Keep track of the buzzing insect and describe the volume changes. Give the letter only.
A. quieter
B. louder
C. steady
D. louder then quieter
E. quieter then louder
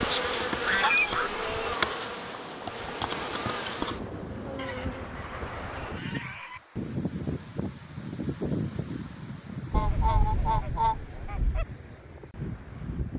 A.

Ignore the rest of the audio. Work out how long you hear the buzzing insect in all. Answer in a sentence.
The buzzing insect can be heard for 6 seconds in total.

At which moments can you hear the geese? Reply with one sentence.
You can hear the geese from 0.6 to 1.8 s, from 4.5 to 6.6 s and from 9.7 to 11.7 s.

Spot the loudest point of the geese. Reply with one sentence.
The loudest moment of the geese is at 1 second.